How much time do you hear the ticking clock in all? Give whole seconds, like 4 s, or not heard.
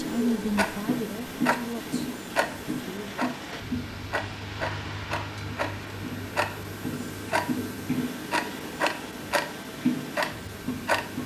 11 s.